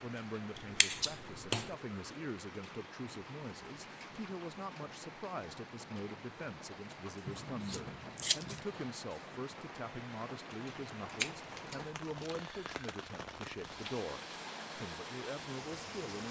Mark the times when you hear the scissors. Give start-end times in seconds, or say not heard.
0.8-1.6, 7.2-8.6, 11.1-12.2.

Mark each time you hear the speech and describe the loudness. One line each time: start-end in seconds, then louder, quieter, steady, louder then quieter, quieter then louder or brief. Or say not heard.
0.0-16.2 steady.